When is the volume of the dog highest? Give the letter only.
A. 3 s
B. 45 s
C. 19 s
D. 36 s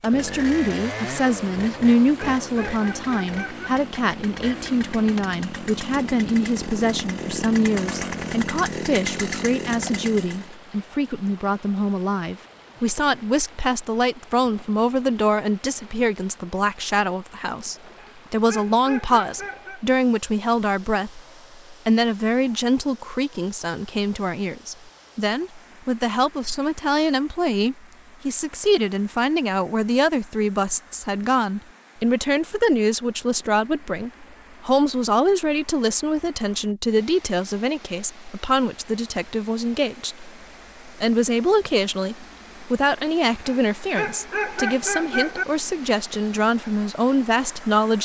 B.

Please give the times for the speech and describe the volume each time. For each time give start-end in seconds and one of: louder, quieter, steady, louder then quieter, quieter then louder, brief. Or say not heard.
0.0-48.0 steady.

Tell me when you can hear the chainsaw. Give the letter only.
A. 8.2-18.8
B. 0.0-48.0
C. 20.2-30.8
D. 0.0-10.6
D.